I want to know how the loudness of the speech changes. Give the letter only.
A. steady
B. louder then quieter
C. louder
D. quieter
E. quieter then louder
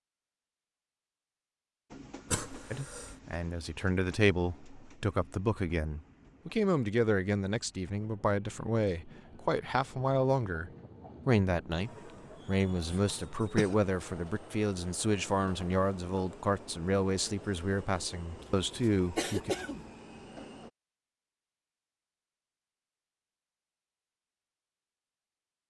A.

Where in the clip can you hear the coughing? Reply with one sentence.
The coughing can be heard from 2.3 to 3.1 s, from 12.6 to 13.8 s and from 18.4 to 19.9 s.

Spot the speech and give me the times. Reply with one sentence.
You can hear the speech from 2.7 to 19.6 s.